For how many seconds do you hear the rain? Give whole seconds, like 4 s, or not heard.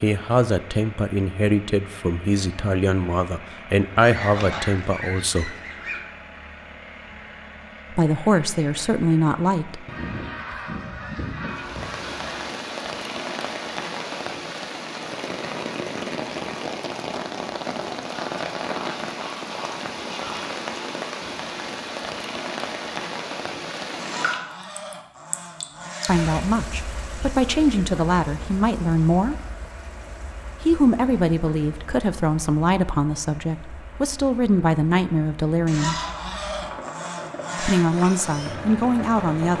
28 s.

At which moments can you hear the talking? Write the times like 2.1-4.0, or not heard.
0.0-5.5, 7.9-9.8, 26.1-29.4, 30.6-36.0, 37.5-39.5.